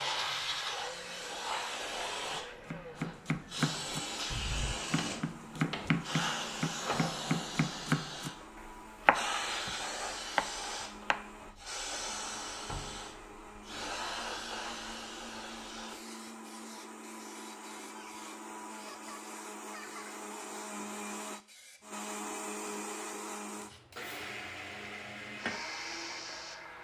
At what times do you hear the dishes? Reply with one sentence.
You can't hear the dishes here.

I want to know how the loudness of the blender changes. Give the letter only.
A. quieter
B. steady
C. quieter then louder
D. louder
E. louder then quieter
D.